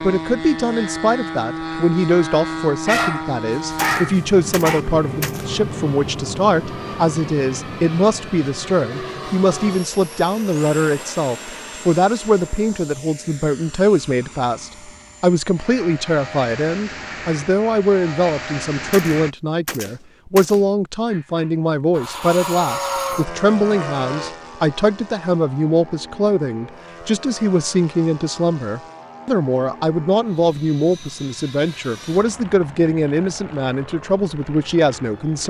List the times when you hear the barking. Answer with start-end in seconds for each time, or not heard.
2.9-4.8, 21.1-21.6.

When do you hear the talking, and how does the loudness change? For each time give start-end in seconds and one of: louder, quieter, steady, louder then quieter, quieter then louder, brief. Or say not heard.
0.0-35.4 steady.